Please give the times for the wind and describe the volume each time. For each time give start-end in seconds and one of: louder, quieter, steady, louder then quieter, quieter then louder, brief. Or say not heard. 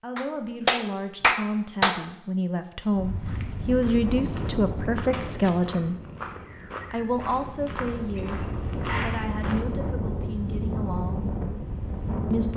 3.0-12.5 quieter then louder.